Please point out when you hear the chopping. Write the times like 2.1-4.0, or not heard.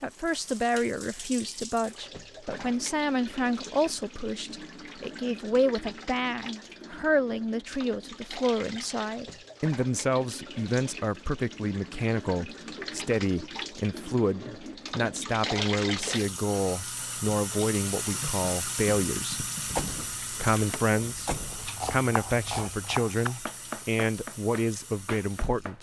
21.5-25.7.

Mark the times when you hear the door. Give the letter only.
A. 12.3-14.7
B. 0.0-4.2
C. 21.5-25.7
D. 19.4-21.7
D.